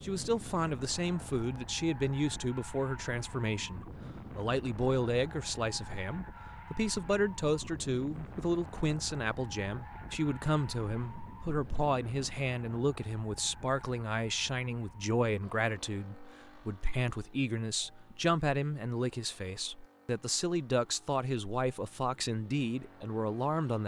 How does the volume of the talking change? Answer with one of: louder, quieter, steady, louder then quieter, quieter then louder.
steady.